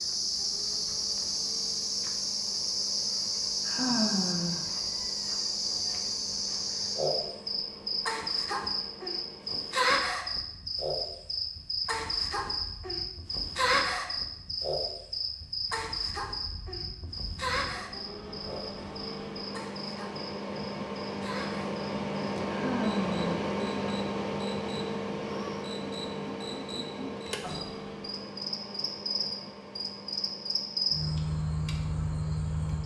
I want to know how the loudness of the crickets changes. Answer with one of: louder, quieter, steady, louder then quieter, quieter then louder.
quieter then louder.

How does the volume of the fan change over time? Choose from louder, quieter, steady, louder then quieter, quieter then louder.
louder then quieter.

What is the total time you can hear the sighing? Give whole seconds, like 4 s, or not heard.
2 s.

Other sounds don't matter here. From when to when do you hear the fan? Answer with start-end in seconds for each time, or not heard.
0.0-32.8.